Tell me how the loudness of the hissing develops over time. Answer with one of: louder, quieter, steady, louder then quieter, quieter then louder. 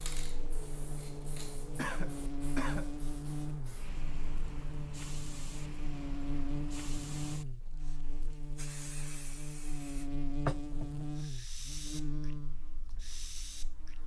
louder then quieter.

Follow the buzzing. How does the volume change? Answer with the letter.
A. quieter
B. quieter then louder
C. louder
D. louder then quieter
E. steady
E.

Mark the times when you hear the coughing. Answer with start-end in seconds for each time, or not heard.
1.8-2.9.